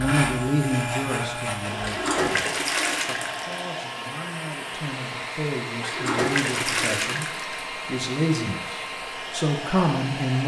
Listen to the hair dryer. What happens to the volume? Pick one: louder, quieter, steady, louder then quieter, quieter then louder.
steady.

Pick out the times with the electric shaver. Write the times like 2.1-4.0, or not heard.
0.0-2.1.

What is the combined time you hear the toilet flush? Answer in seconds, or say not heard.
4 s.